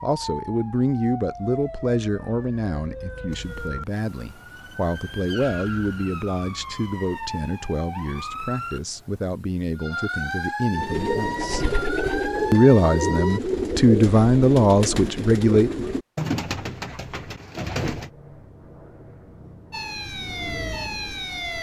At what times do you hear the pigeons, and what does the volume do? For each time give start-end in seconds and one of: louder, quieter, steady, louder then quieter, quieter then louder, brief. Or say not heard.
10.7-18.1 quieter.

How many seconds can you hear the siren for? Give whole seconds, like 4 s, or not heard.
15 s.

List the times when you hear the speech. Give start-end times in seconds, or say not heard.
0.0-11.7, 12.5-15.8.